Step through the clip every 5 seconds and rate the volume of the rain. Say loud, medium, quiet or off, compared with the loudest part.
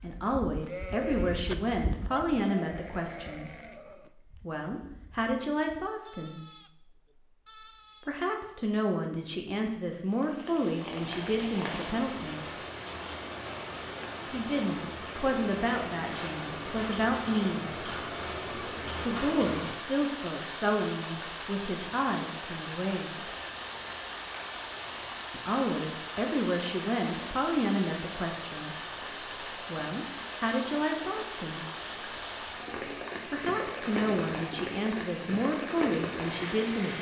off, off, loud, loud, loud, loud, loud, loud.